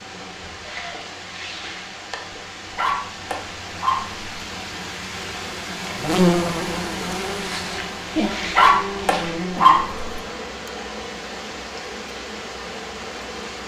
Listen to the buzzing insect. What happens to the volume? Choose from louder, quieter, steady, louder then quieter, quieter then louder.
louder then quieter.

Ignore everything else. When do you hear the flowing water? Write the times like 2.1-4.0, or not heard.
0.0-13.6.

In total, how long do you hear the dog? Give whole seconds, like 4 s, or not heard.
3 s.